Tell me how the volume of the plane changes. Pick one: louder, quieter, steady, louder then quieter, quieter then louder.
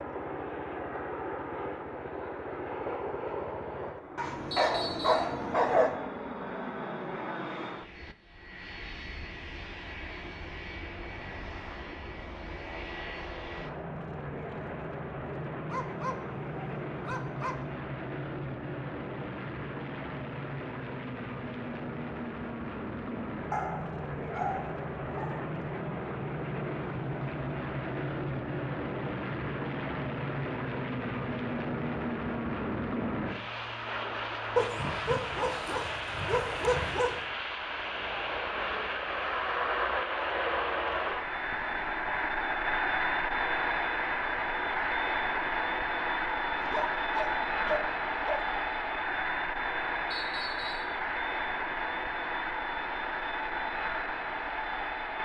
louder.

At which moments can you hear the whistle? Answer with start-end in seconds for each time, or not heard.
4.5-5.3, 50.1-51.0.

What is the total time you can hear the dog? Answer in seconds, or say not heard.
10 s.